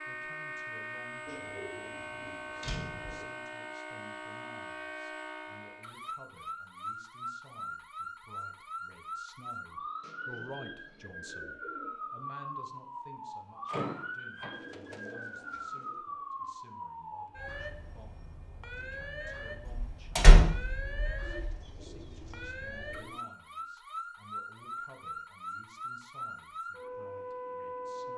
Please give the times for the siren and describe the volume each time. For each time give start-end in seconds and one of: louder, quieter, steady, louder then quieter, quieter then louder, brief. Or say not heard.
0.0-28.1 steady.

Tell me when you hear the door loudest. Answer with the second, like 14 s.
20 s.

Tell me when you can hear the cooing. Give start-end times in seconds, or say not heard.
1.2-3.2, 10.0-12.1, 14.5-16.1, 21.2-23.2.